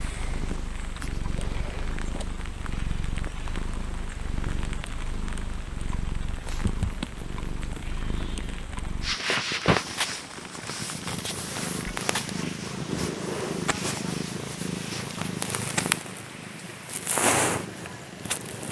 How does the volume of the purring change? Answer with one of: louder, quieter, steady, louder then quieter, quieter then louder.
louder.